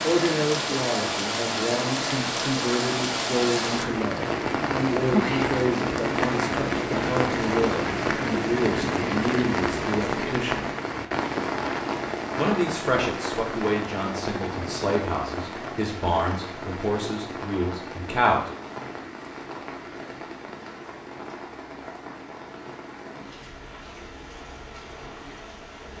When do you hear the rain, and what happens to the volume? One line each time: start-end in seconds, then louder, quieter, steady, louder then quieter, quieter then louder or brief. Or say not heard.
0.0-25.9 quieter.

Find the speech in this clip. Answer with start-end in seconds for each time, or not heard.
0.0-10.7, 12.3-18.5.